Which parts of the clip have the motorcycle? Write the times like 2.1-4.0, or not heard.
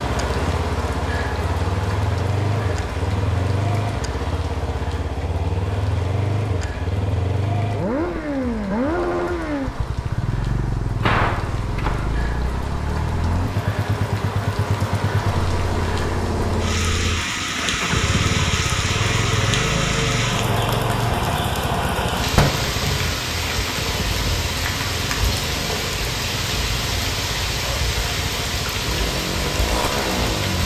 0.0-30.6.